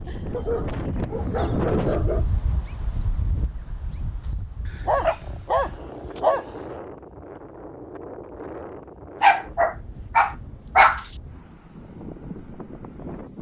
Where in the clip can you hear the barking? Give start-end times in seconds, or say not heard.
0.3-2.2, 4.7-6.8, 9.2-11.2.